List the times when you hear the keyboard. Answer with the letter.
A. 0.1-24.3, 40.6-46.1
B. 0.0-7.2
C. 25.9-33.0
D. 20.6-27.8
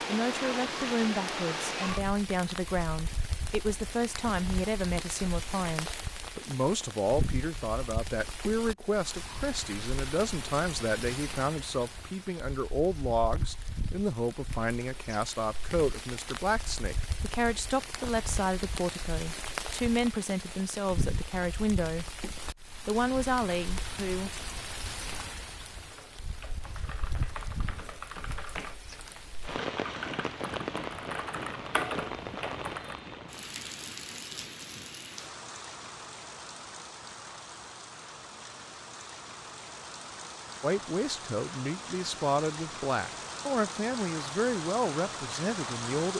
C.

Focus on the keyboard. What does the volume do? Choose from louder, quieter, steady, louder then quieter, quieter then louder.
louder.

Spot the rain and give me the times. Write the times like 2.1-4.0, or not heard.
0.0-46.1.